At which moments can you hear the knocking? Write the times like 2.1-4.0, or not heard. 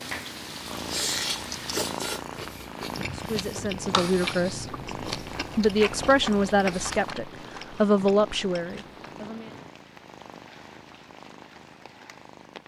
not heard.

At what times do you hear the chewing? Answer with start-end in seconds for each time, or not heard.
0.7-9.3.